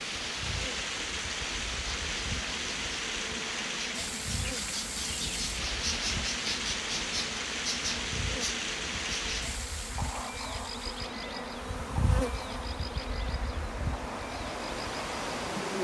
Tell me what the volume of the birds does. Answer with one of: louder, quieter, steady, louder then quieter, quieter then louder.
louder then quieter.